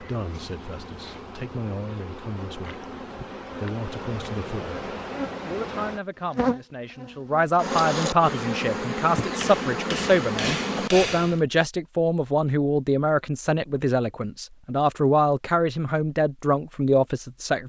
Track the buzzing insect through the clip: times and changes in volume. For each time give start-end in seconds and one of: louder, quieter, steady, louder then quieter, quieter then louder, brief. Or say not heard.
0.0-11.4 louder.